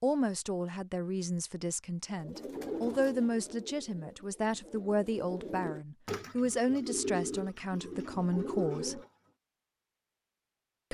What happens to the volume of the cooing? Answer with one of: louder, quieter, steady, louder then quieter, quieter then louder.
quieter then louder.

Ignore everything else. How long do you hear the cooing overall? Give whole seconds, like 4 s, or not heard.
7 s.